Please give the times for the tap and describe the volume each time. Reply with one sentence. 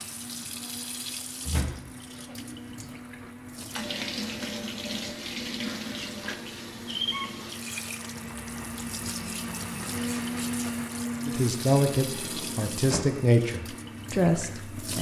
You can hear the tap from 0.0 to 14.9 s, getting louder then quieter.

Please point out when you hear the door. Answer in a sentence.
You can hear the door from 1.4 to 2.4 s and from 12.1 to 13.2 s.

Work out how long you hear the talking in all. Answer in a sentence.
You can hear the talking for 4 seconds altogether.